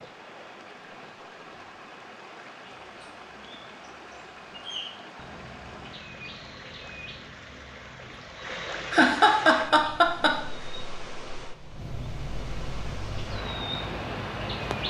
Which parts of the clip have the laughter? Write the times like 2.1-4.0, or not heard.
8.9-10.4.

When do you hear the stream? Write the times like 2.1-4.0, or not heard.
0.0-14.8.